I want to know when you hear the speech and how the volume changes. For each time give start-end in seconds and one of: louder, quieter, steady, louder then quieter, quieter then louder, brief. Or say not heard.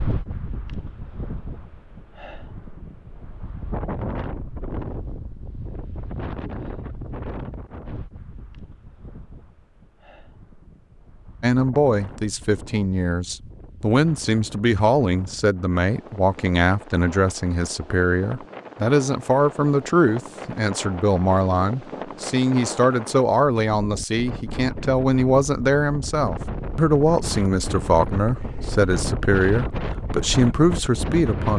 11.4-31.5 steady.